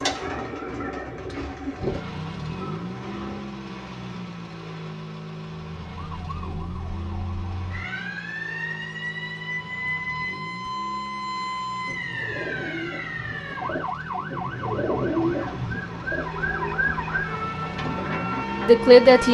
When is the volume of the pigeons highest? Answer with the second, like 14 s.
15 s.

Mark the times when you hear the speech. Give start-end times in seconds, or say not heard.
18.6-19.2.